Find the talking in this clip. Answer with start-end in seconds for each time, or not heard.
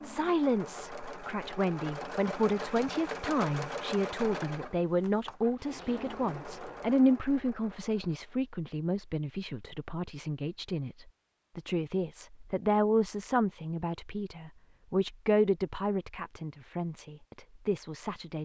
0.0-18.4.